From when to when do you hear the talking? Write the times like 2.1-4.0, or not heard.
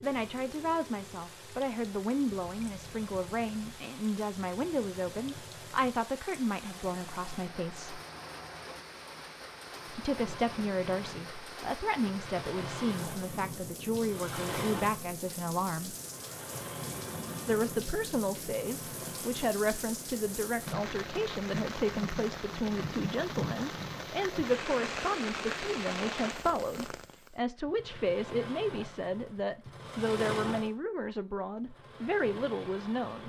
0.0-8.0, 9.9-15.9, 17.4-33.2.